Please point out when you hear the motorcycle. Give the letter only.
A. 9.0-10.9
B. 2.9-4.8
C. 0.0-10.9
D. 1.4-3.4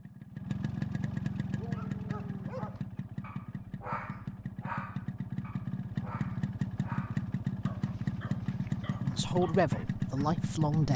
C.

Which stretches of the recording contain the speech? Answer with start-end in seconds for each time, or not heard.
9.0-10.9.